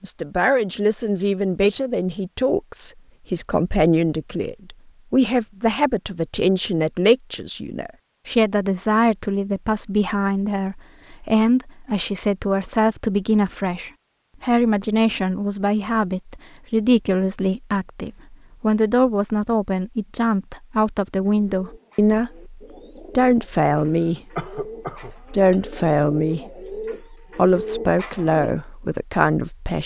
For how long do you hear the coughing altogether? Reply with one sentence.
You can hear the coughing for 2 seconds altogether.